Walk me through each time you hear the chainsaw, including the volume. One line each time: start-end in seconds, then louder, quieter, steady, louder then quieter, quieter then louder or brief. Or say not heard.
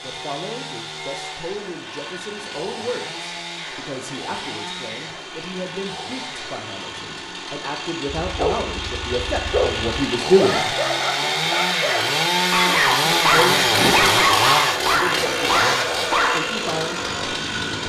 0.0-17.8 louder.